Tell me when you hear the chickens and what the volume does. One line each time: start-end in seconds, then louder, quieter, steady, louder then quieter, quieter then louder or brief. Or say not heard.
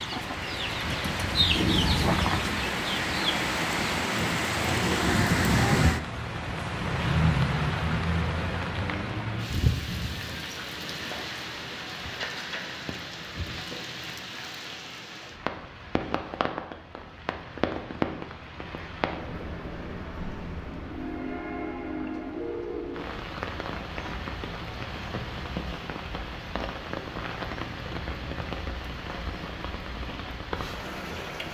0.0-4.0 louder then quieter.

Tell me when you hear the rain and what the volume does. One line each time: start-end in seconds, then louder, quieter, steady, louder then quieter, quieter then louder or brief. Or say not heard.
0.0-31.4 quieter.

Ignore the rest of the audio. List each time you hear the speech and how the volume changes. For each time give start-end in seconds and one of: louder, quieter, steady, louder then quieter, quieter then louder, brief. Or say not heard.
not heard.